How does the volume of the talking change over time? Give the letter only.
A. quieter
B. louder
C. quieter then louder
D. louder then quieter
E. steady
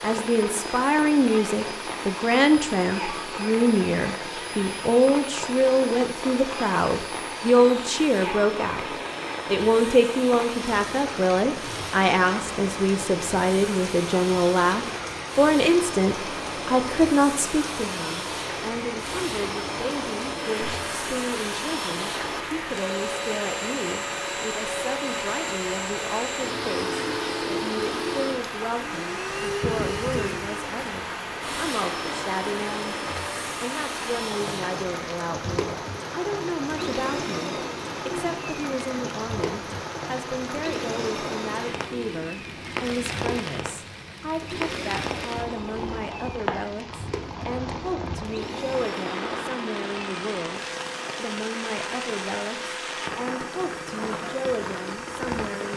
A.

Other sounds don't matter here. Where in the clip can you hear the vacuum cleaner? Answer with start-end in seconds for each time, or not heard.
0.0-55.7.